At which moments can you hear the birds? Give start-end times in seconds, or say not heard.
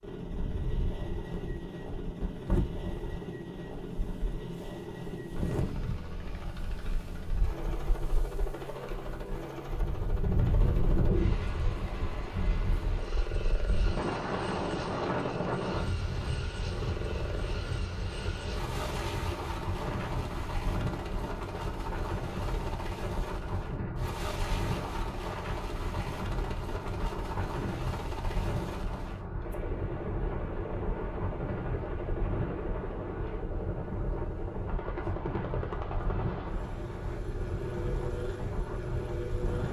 not heard.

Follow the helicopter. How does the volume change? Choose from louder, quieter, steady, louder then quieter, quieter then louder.
steady.